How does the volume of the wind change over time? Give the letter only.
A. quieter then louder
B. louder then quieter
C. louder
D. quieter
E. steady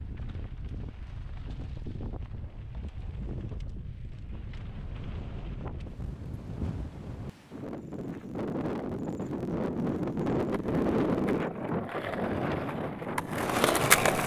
C.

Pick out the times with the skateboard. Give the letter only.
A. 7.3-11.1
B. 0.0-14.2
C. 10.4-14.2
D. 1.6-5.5
C.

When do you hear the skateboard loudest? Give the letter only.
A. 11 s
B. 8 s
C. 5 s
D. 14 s
D.